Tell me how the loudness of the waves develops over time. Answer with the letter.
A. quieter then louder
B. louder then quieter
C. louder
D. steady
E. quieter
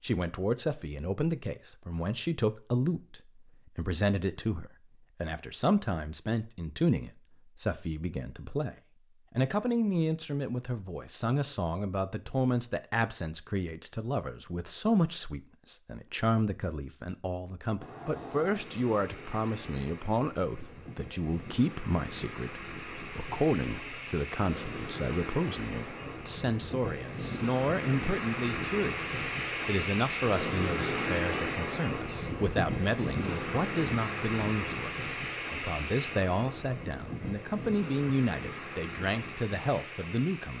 B.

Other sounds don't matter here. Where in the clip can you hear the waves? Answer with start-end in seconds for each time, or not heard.
17.8-40.5.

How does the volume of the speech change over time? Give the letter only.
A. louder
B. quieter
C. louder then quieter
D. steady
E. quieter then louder
D.